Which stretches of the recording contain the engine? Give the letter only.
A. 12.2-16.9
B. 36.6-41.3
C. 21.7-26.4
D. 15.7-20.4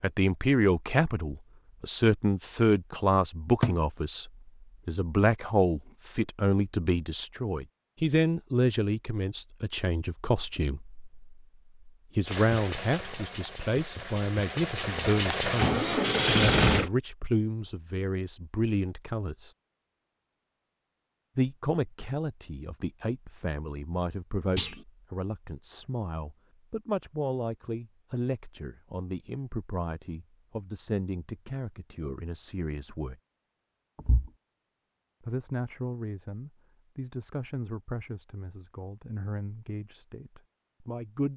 A.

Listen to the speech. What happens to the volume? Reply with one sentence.
The loudness of the speech goes down.